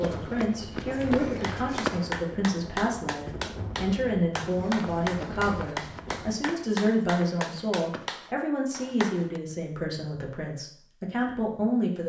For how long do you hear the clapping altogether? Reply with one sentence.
You can hear the clapping for 8 seconds altogether.